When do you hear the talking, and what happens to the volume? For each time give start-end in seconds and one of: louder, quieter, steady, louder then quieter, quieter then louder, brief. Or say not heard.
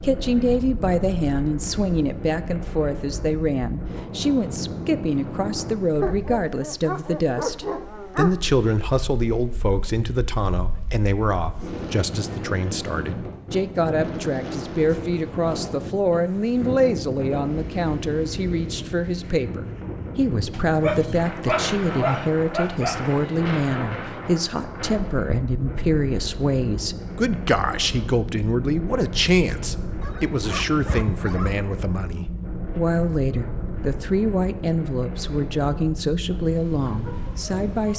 0.0-37.9 steady.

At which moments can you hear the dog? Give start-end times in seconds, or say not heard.
6.0-8.3, 20.5-23.4, 30.0-31.6.